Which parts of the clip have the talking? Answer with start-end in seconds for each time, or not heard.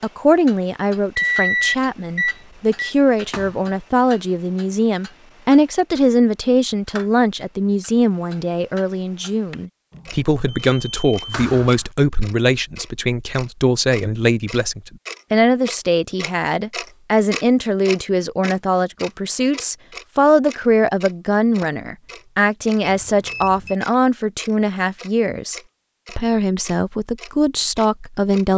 0.0-28.5.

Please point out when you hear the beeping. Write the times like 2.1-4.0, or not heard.
1.1-3.0, 9.9-11.3, 22.8-23.8.